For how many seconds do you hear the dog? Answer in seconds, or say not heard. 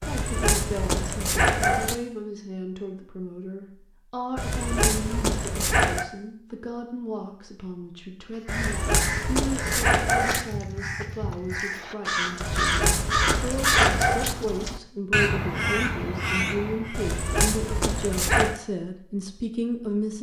9 s.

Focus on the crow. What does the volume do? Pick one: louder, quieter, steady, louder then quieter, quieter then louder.
louder.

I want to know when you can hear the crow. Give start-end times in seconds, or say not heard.
8.3-17.0.